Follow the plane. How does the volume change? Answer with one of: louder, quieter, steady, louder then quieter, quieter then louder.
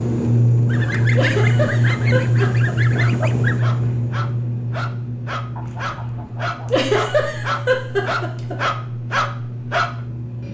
quieter.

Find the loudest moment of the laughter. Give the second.
7 s.